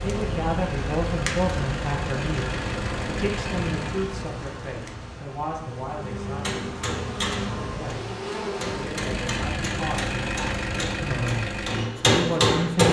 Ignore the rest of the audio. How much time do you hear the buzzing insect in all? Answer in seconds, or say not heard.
9 s.